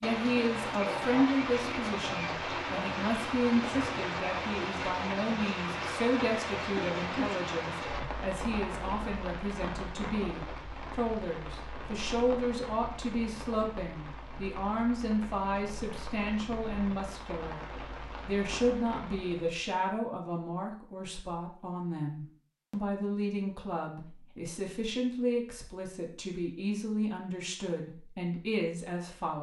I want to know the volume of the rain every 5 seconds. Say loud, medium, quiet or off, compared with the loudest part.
loud, loud, medium, medium, off, off.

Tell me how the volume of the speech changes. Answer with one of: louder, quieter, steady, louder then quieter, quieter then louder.
steady.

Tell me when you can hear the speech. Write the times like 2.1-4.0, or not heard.
0.0-17.6, 18.2-29.3.